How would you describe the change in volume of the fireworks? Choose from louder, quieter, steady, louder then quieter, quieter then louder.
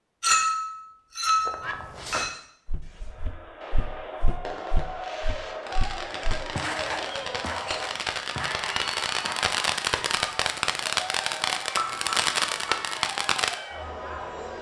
louder.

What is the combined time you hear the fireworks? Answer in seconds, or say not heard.
12 s.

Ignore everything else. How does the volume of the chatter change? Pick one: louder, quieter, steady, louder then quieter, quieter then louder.
steady.